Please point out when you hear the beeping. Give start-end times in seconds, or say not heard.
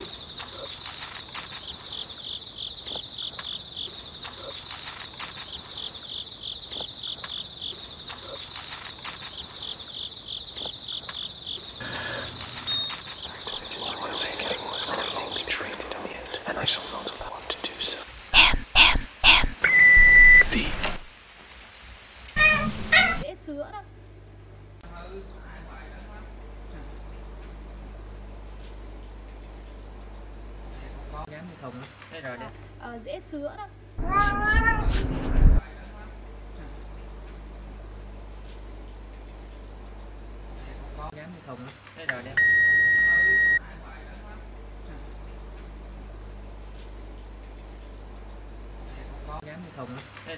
11.8-13.0, 19.6-21.0, 42.0-43.6.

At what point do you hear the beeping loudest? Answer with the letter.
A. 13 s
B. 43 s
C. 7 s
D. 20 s
D.